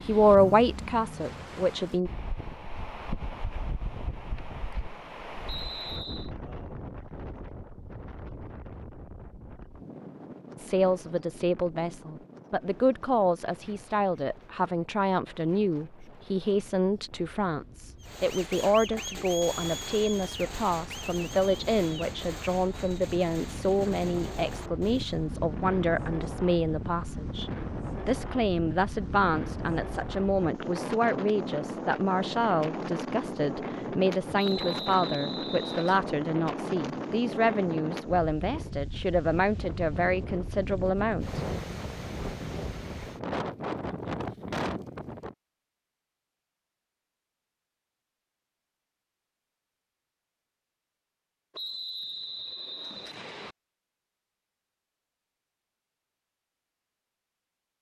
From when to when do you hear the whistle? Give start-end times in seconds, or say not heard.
5.5-6.3, 34.4-36.0, 51.5-53.5.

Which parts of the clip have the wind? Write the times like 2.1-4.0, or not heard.
0.0-45.4.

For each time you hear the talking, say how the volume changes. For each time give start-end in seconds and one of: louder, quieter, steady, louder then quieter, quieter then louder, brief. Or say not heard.
0.1-2.1 brief
10.6-41.5 steady.